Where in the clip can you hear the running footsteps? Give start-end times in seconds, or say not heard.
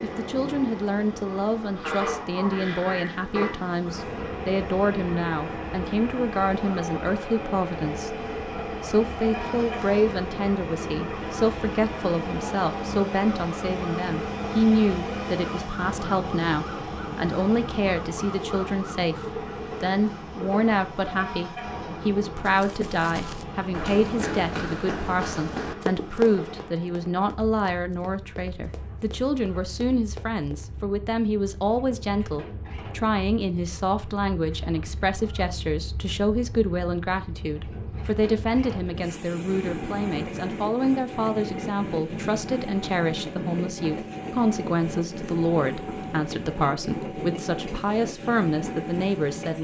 22.4-30.6.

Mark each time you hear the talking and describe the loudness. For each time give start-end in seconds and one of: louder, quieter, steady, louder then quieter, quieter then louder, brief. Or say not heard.
0.0-49.5 steady.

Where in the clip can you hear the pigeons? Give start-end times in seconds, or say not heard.
not heard.